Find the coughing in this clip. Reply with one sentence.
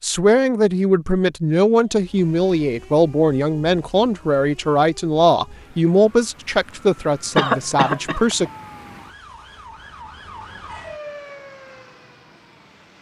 The coughing can be heard from 7.3 to 8.2 s.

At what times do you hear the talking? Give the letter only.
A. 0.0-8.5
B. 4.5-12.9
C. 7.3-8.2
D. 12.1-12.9
A.